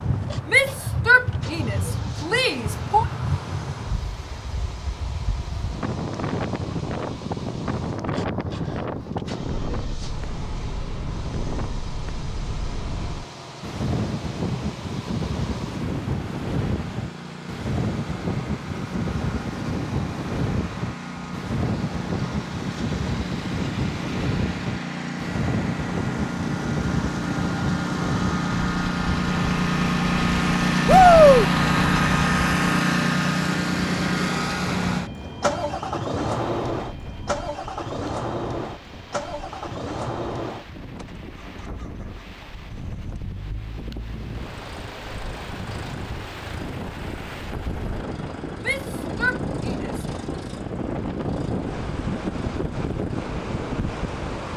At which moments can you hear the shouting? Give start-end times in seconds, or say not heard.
0.5-3.0, 30.9-31.4, 48.6-50.0.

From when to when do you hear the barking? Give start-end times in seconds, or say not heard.
not heard.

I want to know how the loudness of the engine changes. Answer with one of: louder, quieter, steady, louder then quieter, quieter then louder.
louder then quieter.